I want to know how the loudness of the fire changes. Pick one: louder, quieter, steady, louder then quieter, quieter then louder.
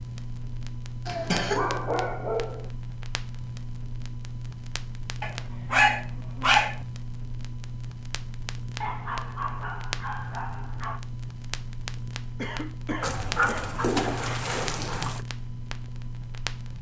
steady.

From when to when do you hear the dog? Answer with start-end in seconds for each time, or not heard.
1.5-2.7, 5.2-6.8, 8.8-11.0, 13.0-15.2.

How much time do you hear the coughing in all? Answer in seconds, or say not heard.
2 s.